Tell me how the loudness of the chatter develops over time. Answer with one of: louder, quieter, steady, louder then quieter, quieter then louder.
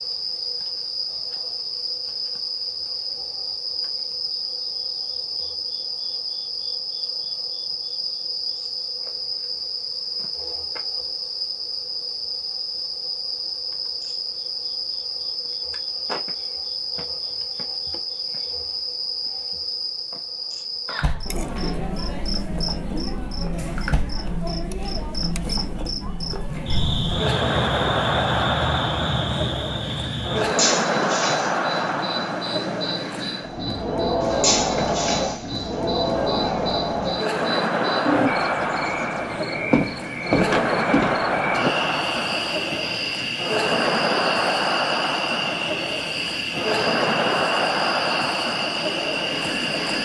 louder.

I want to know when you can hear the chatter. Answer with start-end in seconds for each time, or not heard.
20.9-50.0.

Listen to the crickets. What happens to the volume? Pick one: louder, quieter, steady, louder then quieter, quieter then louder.
steady.